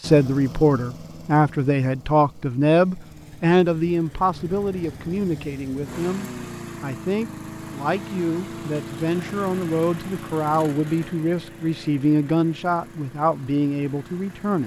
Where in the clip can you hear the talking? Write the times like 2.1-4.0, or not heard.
0.0-14.6.